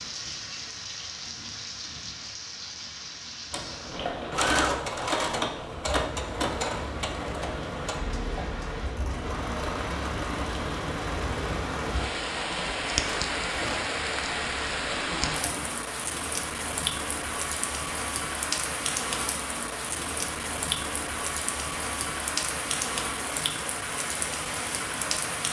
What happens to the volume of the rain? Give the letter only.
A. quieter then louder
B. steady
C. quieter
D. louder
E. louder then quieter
D.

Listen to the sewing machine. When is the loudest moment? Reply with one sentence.
The loudest moment of the sewing machine is at 5 seconds.